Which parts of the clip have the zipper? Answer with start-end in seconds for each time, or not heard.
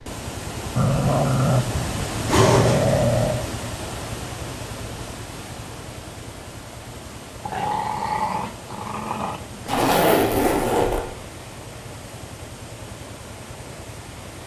2.2-3.0, 9.7-11.1.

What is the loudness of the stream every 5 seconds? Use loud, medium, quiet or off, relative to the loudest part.
loud, medium, medium.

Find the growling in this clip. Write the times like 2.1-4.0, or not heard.
0.8-3.5, 7.4-9.9.